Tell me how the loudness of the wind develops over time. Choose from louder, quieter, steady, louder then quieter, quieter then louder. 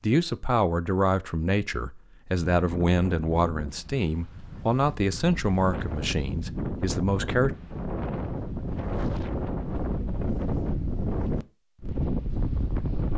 louder.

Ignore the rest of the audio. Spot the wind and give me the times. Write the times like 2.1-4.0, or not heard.
2.5-13.1.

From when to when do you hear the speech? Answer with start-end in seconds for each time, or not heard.
0.0-7.5.